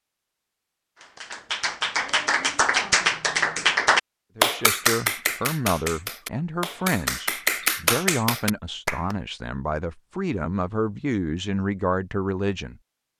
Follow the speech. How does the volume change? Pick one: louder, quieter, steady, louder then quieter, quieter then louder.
steady.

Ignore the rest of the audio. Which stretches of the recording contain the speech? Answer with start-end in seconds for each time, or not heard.
4.3-12.8.